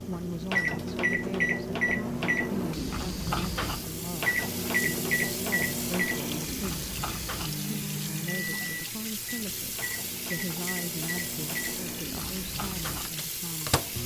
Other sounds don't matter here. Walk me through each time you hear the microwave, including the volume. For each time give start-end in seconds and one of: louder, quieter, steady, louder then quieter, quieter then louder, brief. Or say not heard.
0.0-14.0 quieter.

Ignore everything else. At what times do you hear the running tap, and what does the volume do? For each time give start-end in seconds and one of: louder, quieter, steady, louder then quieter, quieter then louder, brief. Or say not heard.
0.0-14.0 louder.